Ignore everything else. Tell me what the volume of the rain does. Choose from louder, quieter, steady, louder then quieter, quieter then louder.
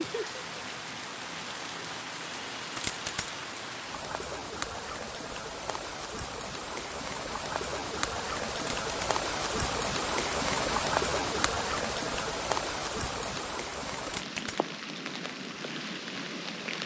louder then quieter.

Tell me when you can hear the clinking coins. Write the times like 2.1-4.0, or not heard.
2.8-3.4, 8.8-9.2, 14.1-14.7.